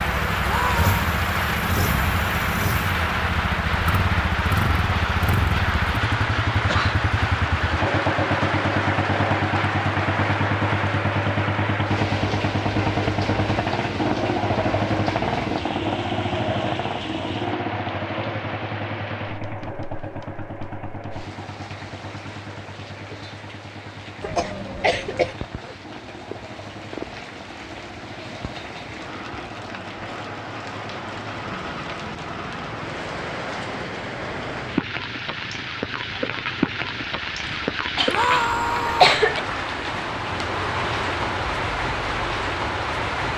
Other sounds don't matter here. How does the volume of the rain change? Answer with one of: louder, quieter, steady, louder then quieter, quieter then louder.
quieter then louder.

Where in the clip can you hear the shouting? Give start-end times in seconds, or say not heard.
0.4-0.9, 38.0-39.2.